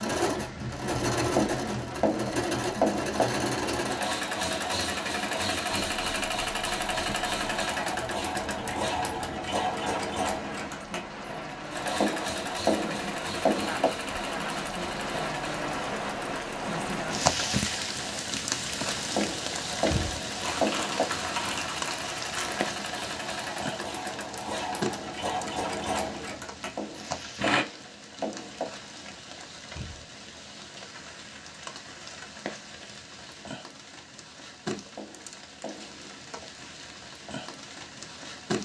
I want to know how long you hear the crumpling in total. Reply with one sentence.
You can hear the crumpling for 2 seconds altogether.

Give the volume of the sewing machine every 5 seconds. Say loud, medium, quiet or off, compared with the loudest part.
loud, loud, medium, medium, medium, loud, off, off.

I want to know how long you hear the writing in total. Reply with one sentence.
The writing can be heard for 9 seconds in total.